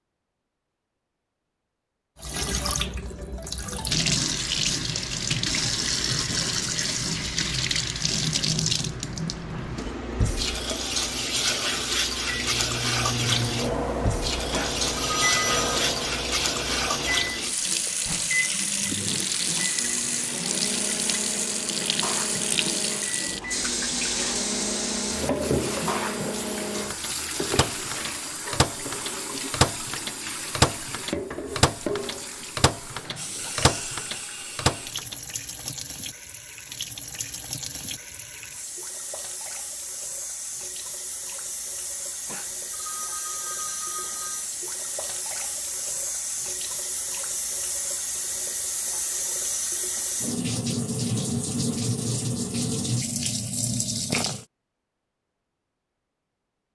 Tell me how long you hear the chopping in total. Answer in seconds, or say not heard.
not heard.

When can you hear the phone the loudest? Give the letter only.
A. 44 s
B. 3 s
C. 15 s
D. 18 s
C.